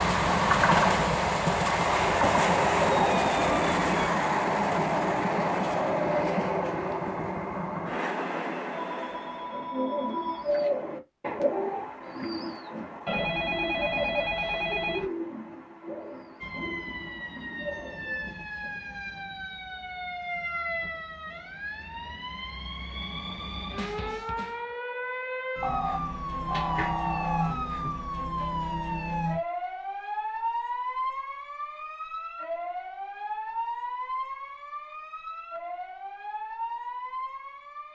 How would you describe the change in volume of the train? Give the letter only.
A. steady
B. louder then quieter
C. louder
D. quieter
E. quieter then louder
D.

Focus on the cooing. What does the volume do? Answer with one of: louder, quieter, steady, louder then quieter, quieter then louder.
quieter.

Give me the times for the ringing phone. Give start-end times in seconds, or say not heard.
8.7-10.7, 13.1-15.1, 25.6-28.0.